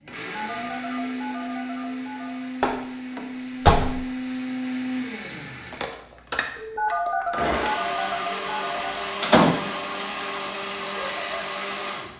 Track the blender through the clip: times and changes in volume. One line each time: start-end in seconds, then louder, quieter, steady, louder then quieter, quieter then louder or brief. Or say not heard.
0.0-12.1 steady.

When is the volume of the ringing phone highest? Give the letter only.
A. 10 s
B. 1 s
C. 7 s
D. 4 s
C.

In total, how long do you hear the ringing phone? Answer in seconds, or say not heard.
5 s.